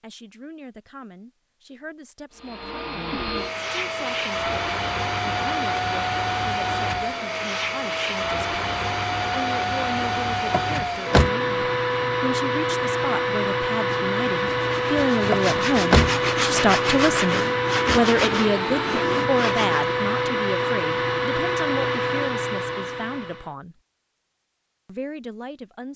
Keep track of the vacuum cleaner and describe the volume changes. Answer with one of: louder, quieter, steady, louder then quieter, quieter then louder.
steady.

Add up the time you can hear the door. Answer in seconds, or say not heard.
2 s.